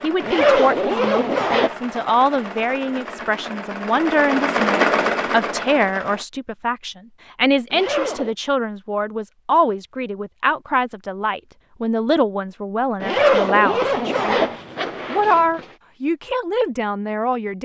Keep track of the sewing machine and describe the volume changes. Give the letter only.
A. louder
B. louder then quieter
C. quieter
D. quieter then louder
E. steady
A.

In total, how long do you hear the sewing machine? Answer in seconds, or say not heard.
6 s.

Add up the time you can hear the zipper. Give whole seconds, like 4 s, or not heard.
5 s.